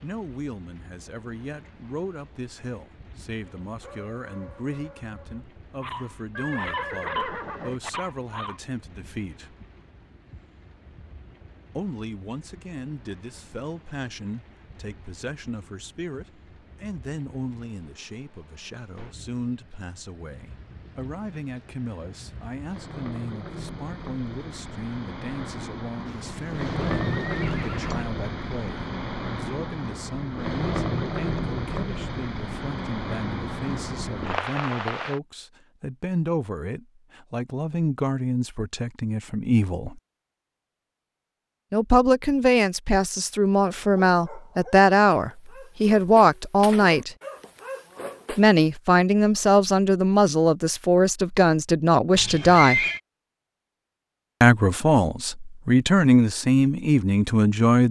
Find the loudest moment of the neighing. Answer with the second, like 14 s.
53 s.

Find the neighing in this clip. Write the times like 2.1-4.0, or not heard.
6.3-7.8, 26.1-28.1, 52.1-53.0.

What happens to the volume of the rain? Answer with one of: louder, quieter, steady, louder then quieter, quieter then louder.
louder.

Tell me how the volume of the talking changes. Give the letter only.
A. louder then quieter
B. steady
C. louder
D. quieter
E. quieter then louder
C.